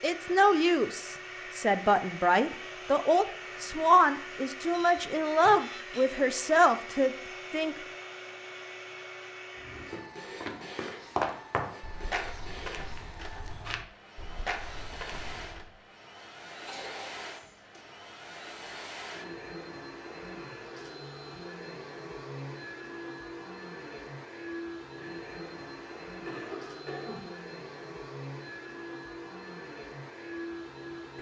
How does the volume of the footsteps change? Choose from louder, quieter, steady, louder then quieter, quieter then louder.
louder then quieter.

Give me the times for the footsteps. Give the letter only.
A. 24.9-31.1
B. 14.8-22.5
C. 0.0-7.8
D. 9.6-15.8
D.